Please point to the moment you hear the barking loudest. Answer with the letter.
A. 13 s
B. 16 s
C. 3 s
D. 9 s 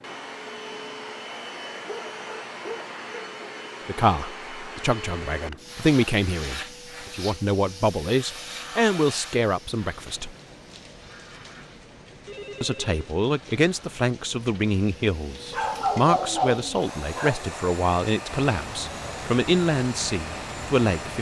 B.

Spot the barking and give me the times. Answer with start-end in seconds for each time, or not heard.
1.8-3.4, 15.5-17.4.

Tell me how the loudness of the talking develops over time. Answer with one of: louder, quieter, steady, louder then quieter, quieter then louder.
steady.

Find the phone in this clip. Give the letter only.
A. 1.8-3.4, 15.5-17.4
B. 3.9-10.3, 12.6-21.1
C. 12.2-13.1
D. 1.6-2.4
C.